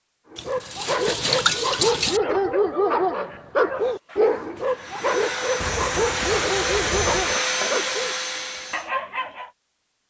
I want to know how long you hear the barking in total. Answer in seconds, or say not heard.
9 s.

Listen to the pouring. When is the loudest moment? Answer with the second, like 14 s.
1 s.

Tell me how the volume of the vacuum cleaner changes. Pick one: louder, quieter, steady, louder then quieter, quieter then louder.
louder.